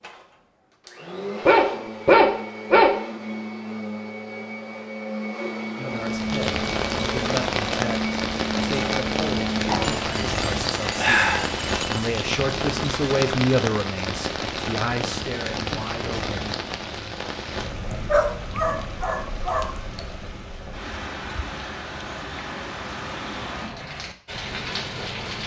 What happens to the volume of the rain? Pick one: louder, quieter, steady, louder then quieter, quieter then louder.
quieter.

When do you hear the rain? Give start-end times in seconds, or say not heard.
5.9-25.4.